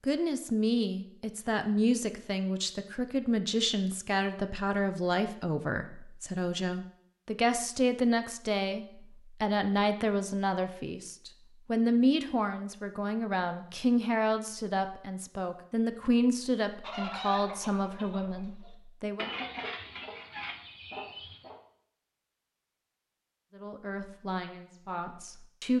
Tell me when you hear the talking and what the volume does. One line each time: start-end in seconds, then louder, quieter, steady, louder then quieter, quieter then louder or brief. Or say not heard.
0.0-19.3 steady
23.5-25.7 brief.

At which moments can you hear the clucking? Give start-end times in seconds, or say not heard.
16.8-21.6.